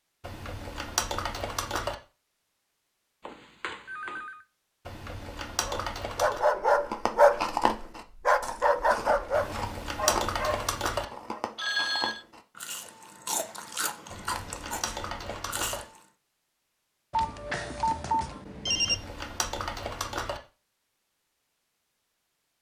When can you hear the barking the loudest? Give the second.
7 s.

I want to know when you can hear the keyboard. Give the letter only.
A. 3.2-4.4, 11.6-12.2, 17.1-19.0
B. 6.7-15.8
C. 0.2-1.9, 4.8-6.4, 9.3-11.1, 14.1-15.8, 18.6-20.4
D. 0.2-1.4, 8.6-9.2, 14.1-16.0
C.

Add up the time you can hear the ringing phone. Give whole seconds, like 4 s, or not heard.
4 s.